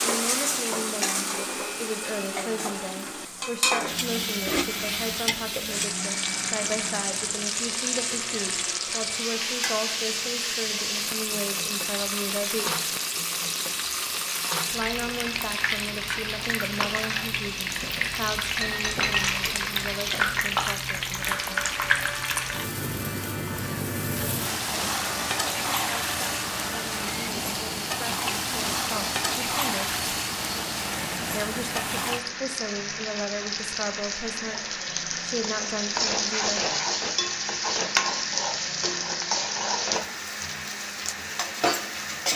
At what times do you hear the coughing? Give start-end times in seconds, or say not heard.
not heard.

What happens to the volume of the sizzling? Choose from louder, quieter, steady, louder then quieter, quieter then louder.
steady.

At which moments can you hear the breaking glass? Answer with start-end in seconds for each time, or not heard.
18.6-19.7.